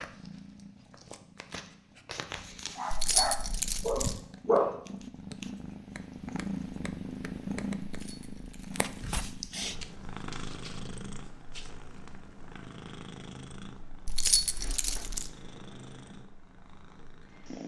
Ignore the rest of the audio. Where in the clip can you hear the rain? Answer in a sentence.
You can't hear the rain here.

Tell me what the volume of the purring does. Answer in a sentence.
The volume of the purring goes up, then down.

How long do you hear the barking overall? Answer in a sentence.
The barking can be heard for 2 seconds in total.